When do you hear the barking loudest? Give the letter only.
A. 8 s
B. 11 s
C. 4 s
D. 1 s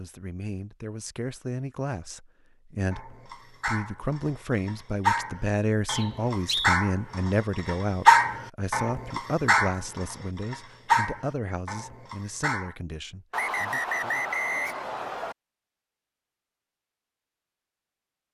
A.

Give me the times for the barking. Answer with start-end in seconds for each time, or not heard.
2.9-12.8.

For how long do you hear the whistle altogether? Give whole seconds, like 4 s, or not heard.
3 s.